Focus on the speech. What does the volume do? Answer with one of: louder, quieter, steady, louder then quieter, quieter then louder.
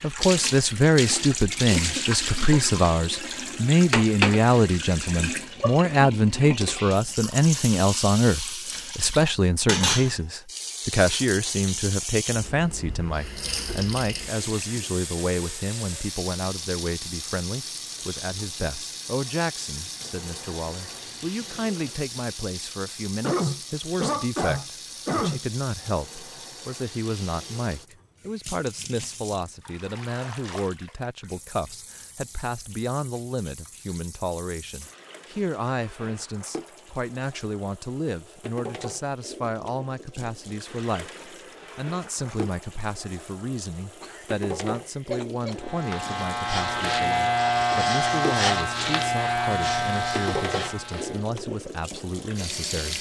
quieter.